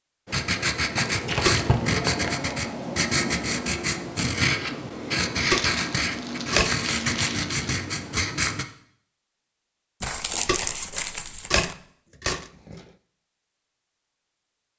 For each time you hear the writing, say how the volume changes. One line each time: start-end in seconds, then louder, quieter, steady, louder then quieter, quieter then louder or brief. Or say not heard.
0.2-8.7 steady.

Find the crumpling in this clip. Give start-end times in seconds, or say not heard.
0.9-2.4, 5.4-7.8, 10.0-11.8.